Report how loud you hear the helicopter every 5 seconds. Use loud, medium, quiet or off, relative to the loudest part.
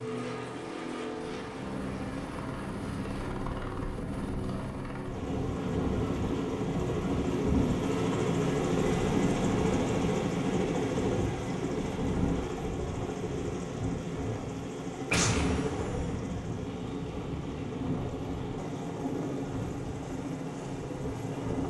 medium, loud, loud, medium, medium.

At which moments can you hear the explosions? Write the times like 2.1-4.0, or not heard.
15.1-16.1.